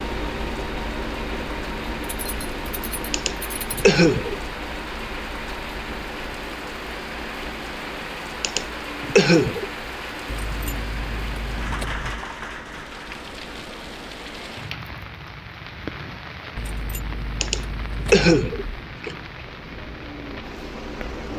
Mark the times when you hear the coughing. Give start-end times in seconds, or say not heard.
3.1-4.3, 8.4-9.7, 17.4-19.1.